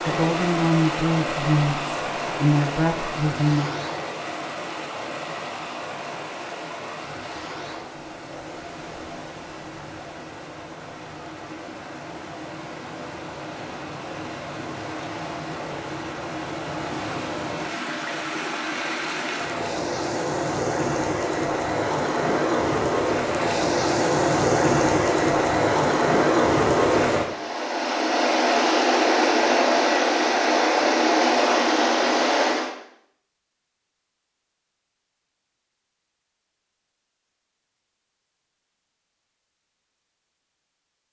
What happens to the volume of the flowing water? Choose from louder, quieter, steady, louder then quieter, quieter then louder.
quieter then louder.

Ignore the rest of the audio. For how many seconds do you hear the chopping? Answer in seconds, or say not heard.
not heard.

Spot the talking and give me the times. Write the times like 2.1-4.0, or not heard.
0.1-3.7.